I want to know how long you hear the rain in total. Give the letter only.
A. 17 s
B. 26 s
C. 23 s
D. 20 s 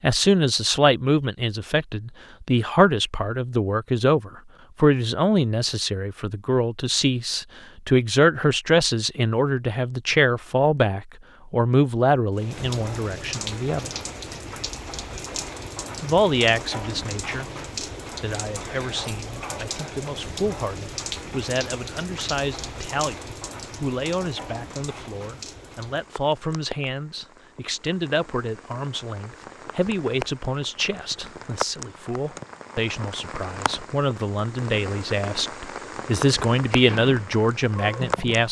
B.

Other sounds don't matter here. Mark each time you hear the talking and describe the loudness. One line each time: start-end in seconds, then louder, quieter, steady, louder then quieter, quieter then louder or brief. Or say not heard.
0.0-13.9 steady
16.0-17.5 brief
18.2-38.4 louder.